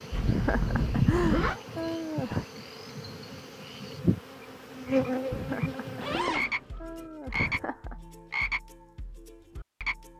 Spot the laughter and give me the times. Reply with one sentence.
The laughter can be heard from 0.2 to 2.5 s and from 5.3 to 8.0 s.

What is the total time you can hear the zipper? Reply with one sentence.
You can hear the zipper for 2 seconds altogether.